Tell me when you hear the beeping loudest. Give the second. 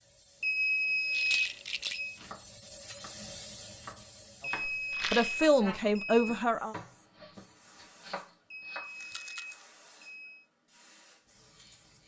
1 s.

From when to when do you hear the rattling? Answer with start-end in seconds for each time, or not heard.
1.1-2.0, 4.9-5.4, 9.0-9.7.